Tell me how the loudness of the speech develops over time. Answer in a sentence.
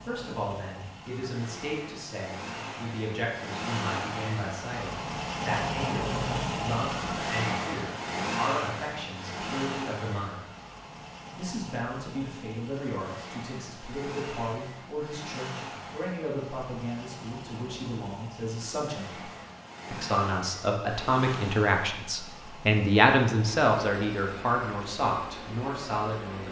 The volume of the speech goes up.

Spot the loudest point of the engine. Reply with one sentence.
The loudest moment of the engine is at 6 seconds.